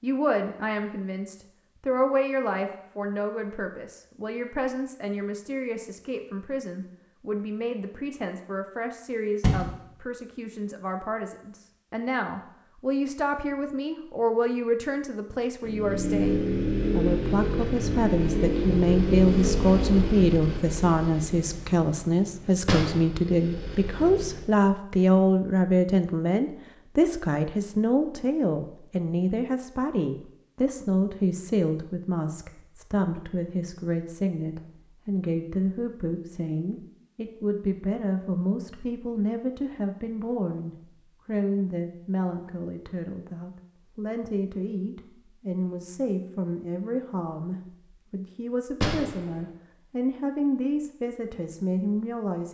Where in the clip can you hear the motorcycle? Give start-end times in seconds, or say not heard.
15.6-24.5.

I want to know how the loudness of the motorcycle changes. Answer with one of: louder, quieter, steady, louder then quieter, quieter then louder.
quieter.